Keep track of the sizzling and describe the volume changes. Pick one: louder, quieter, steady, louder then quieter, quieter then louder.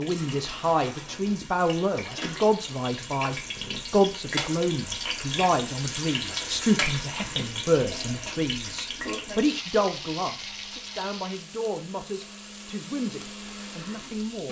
louder then quieter.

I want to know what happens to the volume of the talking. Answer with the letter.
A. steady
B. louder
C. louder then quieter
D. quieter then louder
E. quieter
E.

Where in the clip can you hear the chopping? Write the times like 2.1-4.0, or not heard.
not heard.